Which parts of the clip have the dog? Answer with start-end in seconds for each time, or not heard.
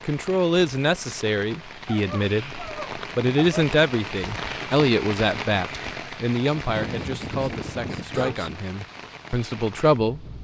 1.9-3.5, 6.5-8.6.